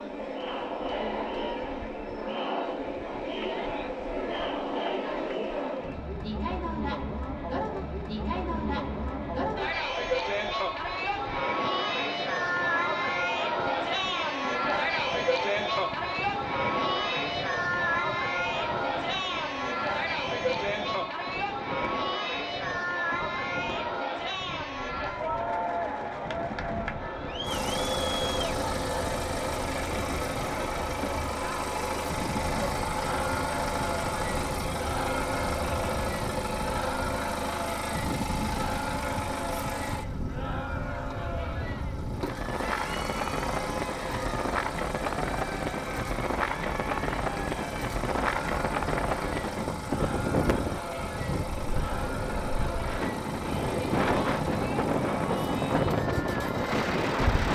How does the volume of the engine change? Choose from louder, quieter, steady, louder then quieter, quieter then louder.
quieter.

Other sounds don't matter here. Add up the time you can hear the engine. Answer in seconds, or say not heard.
30 s.